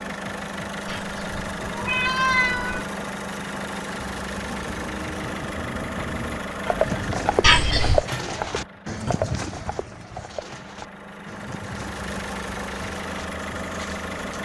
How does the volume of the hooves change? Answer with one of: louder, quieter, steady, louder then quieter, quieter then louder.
louder then quieter.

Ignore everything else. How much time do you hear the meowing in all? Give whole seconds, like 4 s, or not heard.
3 s.